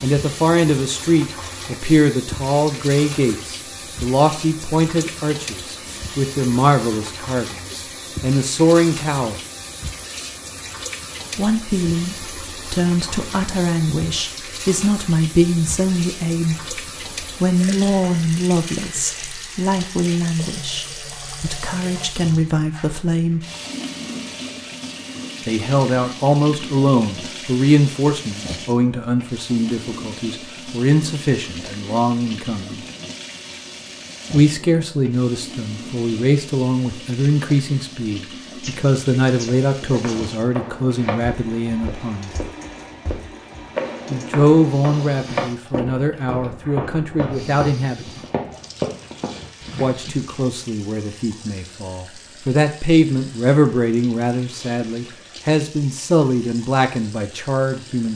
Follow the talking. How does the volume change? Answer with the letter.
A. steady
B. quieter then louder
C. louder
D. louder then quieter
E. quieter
A.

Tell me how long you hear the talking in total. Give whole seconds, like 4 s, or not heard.
49 s.